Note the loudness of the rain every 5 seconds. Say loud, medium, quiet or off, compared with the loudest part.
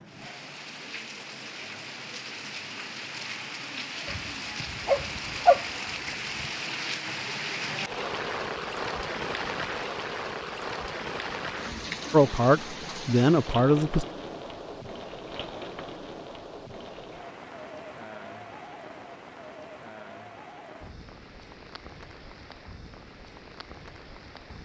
medium, loud, loud, medium, quiet.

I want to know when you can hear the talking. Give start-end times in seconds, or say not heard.
12.1-14.1.